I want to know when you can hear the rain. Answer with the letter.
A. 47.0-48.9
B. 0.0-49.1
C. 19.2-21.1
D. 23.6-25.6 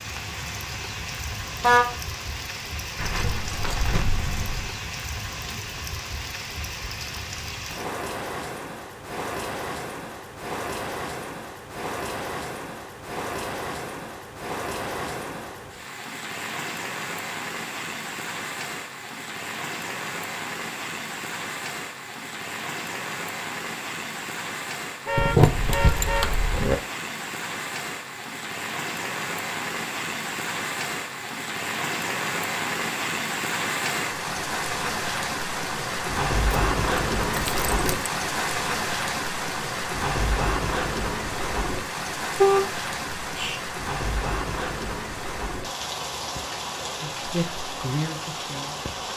B.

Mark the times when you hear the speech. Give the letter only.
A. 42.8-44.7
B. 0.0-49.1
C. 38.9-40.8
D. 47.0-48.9
D.